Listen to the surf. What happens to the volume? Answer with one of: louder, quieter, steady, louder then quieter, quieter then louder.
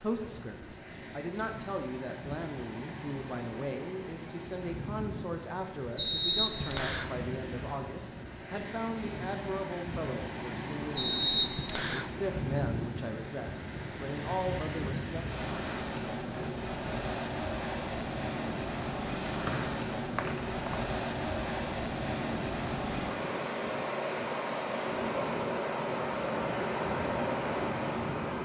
louder.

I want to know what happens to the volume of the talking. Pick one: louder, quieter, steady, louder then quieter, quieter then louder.
steady.